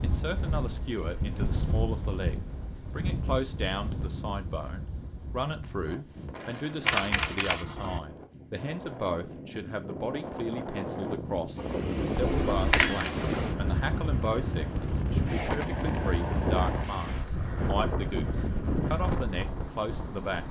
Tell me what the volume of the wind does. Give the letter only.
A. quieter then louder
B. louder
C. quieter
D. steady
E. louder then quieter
A.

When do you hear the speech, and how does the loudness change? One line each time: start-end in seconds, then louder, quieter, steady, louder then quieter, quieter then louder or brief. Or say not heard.
0.0-20.4 steady.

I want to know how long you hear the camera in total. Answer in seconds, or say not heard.
2 s.